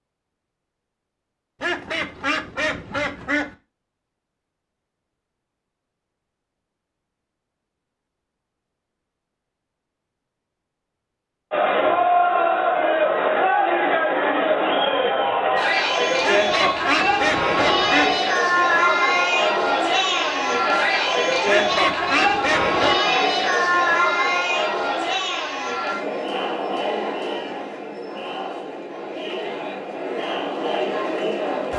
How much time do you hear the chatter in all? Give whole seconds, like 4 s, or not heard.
20 s.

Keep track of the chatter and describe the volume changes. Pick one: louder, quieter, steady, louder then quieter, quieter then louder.
quieter.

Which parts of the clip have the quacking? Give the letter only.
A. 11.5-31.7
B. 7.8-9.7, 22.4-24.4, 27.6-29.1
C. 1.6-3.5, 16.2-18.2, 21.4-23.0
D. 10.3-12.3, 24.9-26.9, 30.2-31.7
C.